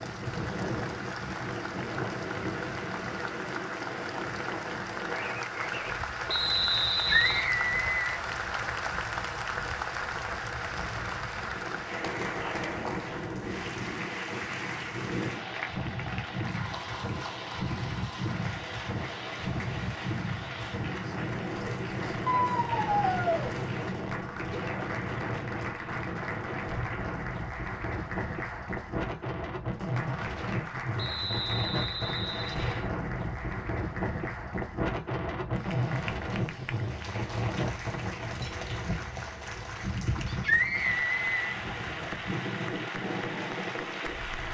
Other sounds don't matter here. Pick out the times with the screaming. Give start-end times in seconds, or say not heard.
6.9-8.2, 22.2-23.5, 40.2-41.5.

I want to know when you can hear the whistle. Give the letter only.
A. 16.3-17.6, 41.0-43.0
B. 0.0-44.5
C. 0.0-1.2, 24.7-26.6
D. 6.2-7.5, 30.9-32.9
D.